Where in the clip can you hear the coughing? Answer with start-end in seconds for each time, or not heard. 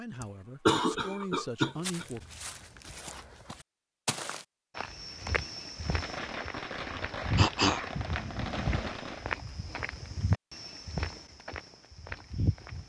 0.2-2.0, 7.3-8.9.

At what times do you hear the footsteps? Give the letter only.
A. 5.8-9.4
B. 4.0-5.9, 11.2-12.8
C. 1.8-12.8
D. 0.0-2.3
C.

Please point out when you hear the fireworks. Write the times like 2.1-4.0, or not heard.
5.8-9.4.